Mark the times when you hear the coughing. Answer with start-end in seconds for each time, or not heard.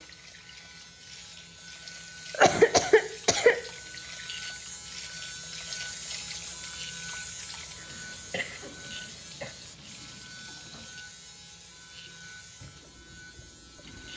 2.3-3.5, 7.8-9.6.